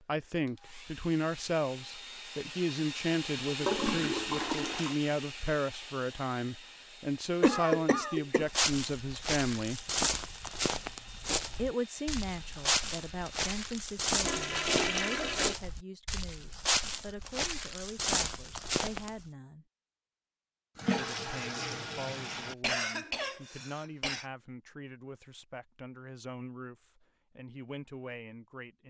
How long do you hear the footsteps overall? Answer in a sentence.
The footsteps can be heard for 11 seconds in total.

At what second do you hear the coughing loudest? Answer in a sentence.
The volume of the coughing peaks at 8 seconds.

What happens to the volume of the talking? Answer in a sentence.
The volume of the talking goes down.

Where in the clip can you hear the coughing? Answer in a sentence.
You can hear the coughing from 7.4 to 8.4 s and from 22.4 to 24.2 s.